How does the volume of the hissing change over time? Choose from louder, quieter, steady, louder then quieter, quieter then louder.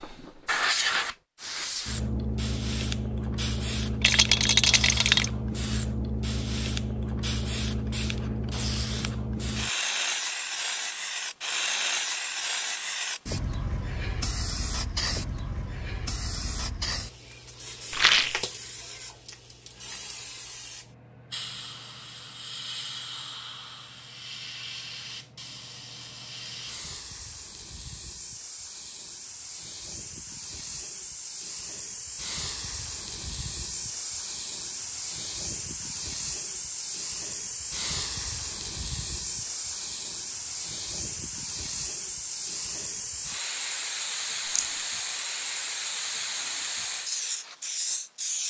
quieter then louder.